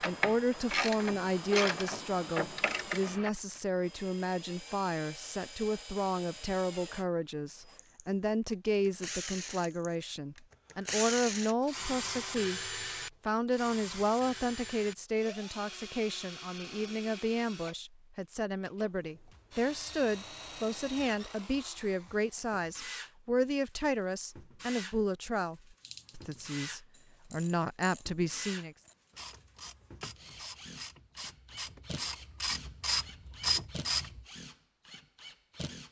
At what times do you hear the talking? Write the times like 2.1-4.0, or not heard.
0.1-28.8.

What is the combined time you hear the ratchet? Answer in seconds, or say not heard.
12 s.